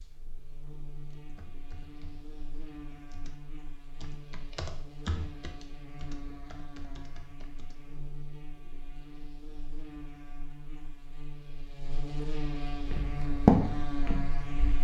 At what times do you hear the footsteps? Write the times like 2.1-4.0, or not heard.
12.8-14.7.